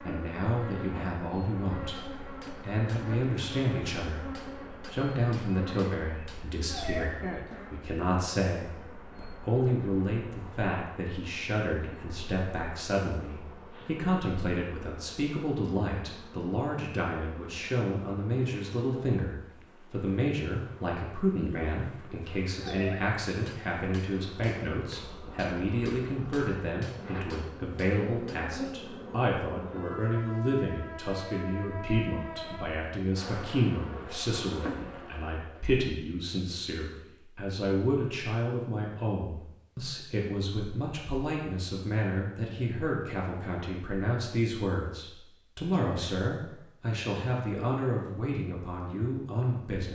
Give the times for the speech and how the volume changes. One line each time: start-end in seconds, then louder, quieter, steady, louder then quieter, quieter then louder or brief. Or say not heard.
0.0-49.9 steady.